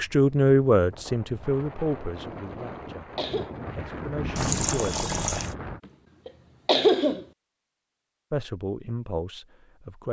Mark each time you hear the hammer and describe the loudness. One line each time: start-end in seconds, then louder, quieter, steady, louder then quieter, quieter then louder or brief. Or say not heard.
not heard.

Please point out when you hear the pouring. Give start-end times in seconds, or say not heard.
4.3-5.5.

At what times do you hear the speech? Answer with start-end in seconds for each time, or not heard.
0.0-5.1, 8.3-10.0.